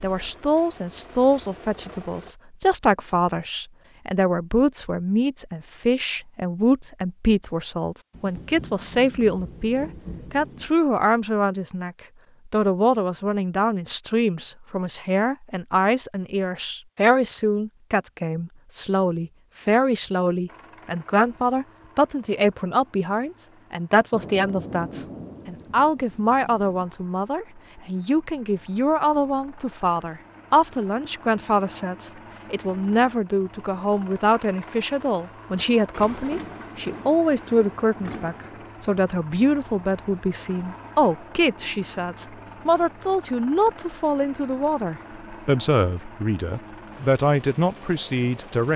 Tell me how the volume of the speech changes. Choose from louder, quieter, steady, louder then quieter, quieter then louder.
steady.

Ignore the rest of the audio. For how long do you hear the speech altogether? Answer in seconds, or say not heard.
49 s.